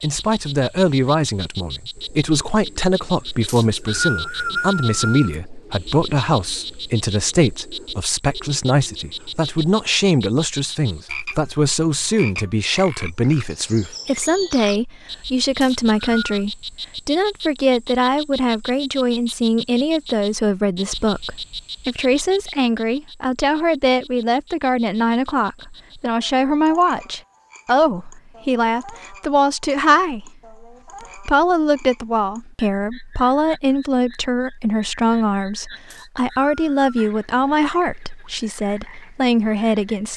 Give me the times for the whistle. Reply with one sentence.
You can hear the whistle from 3.5 to 5.3 s, from 15.6 to 16.4 s and from 35.9 to 37.1 s.